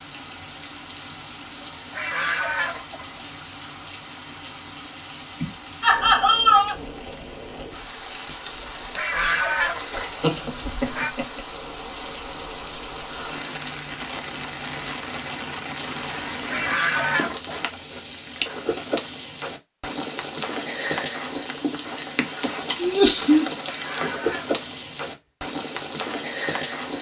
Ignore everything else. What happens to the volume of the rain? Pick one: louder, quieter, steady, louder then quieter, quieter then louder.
louder.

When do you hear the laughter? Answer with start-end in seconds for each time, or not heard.
5.4-6.8, 9.8-11.4, 22.8-23.4.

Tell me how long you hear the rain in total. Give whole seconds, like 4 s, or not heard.
27 s.